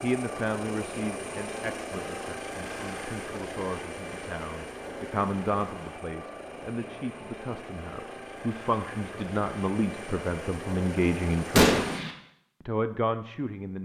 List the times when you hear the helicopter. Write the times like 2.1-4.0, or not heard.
0.0-12.1.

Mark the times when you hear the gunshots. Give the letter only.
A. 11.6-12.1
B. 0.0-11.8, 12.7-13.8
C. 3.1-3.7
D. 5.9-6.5
A.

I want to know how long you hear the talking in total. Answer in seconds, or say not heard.
13 s.